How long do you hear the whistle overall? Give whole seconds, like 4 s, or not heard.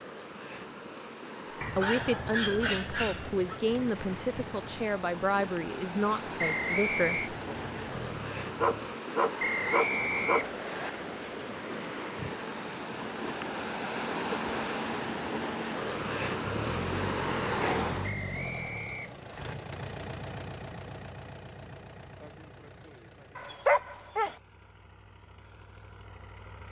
4 s.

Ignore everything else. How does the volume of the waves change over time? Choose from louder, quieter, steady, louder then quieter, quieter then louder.
louder.